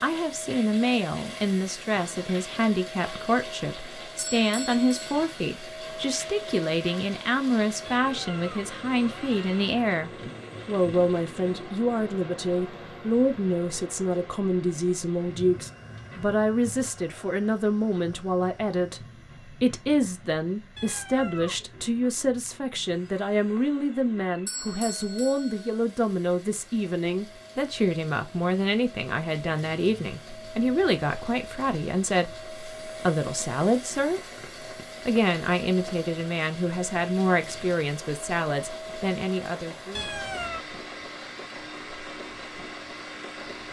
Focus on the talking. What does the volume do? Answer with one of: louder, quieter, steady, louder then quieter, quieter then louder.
steady.